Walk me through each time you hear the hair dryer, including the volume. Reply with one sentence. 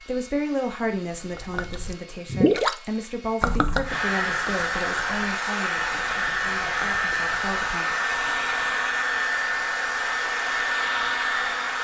You can hear the hair dryer from 0.0 to 11.8 s, getting louder.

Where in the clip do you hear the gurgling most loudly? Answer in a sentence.
The volume of the gurgling peaks at 3 seconds.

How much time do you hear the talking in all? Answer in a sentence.
You can hear the talking for 8 seconds altogether.